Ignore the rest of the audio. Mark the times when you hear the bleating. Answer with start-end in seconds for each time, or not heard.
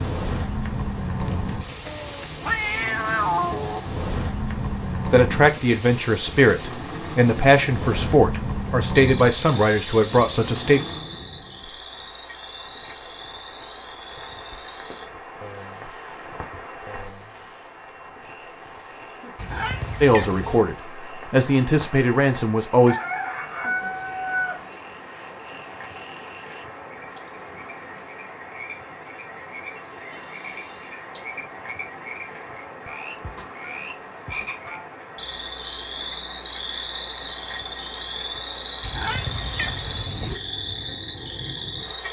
not heard.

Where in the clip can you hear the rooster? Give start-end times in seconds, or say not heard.
22.9-24.6.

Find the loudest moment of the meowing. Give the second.
3 s.